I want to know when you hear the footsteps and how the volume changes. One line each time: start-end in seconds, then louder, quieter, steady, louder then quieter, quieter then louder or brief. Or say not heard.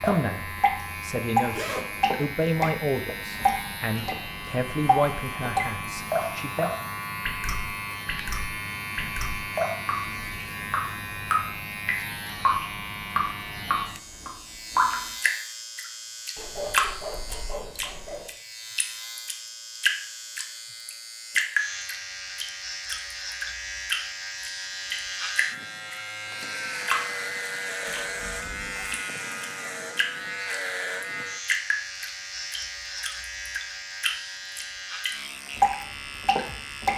not heard.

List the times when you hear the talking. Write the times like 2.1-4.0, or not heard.
0.0-6.7.